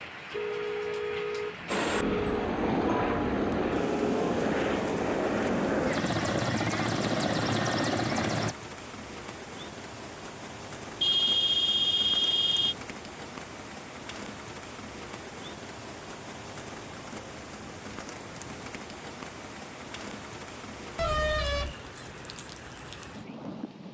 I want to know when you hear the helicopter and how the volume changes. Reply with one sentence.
You can hear the helicopter from 1.6 to 8.6 s, at a steady volume.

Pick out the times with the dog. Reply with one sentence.
You can't hear the dog here.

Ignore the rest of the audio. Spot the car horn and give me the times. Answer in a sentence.
The car horn can be heard from 0.3 to 2.5 s, from 11.0 to 12.8 s and from 20.9 to 21.8 s.